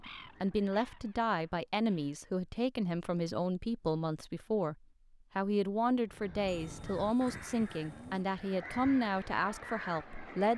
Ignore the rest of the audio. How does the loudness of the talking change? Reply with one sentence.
The volume of the talking stays about the same.